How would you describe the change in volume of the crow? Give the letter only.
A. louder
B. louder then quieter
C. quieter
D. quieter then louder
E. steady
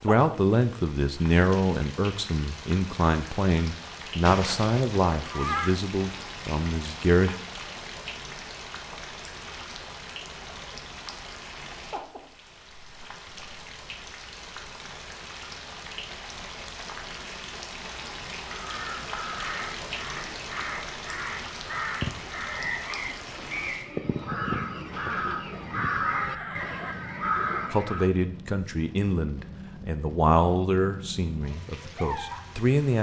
A.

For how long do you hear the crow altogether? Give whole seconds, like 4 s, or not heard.
10 s.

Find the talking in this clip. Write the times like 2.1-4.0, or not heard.
0.0-7.3, 27.7-32.9.